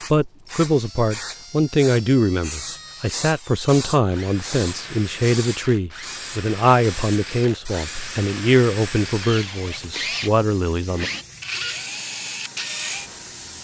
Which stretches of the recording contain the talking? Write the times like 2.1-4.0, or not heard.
0.1-11.1.